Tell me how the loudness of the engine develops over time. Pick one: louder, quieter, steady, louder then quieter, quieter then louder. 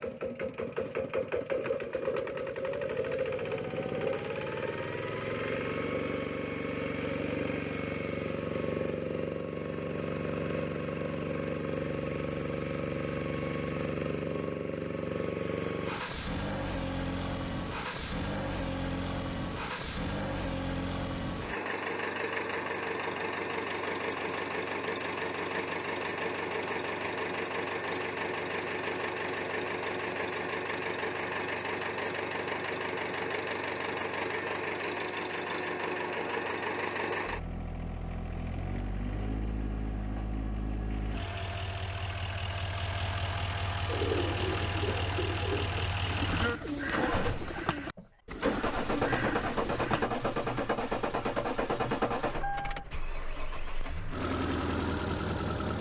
steady.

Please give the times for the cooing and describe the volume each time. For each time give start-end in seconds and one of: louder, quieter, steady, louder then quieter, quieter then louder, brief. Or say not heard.
43.9-50.0 steady.